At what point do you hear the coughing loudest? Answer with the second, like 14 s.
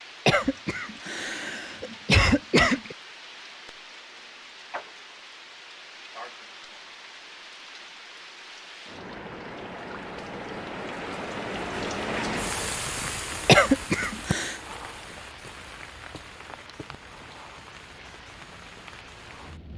14 s.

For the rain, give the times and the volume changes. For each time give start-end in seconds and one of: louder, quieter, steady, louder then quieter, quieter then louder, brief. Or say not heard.
0.0-19.7 louder then quieter.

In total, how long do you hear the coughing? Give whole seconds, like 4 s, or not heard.
4 s.